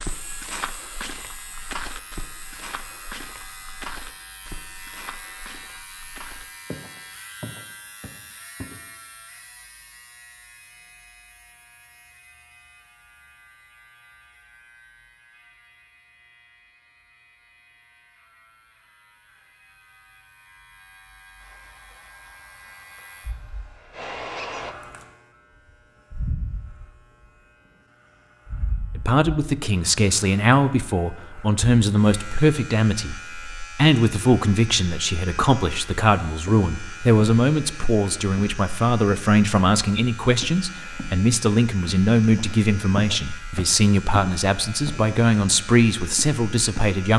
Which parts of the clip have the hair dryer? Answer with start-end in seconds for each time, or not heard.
21.4-24.8.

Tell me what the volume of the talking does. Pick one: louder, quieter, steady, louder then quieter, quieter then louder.
steady.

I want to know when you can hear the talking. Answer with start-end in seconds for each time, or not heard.
28.9-47.1.